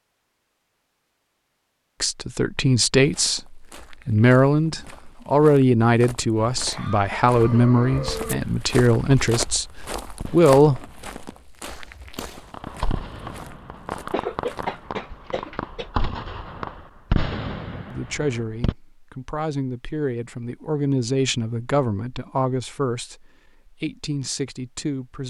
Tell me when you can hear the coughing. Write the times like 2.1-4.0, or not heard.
6.5-8.4, 14.1-15.8.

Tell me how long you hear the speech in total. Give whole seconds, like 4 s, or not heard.
16 s.